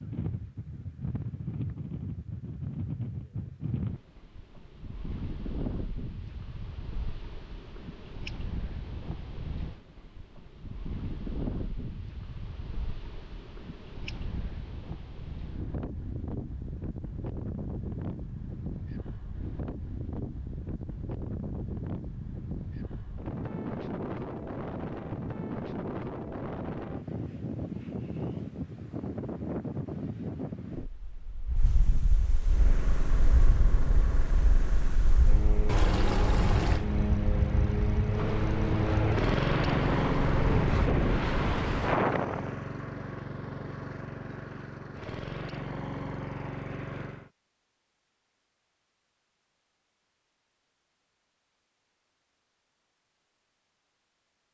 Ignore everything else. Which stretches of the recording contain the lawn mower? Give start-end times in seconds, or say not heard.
32.4-47.3.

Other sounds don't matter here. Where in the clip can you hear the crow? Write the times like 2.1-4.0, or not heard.
not heard.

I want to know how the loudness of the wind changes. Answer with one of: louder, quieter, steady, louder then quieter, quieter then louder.
louder.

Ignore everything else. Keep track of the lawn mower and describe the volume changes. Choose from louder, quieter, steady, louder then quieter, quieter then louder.
louder then quieter.